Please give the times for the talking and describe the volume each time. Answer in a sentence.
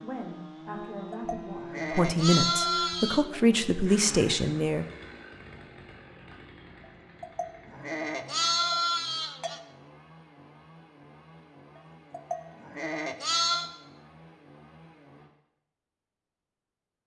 You can hear the talking from 0.0 to 4.8 s, getting louder.